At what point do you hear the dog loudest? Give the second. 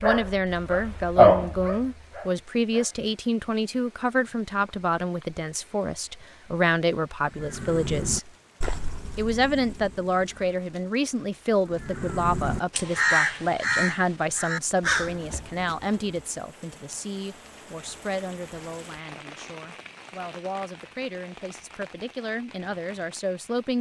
1 s.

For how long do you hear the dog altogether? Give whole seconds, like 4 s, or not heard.
3 s.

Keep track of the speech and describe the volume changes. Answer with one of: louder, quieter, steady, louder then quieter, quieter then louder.
quieter.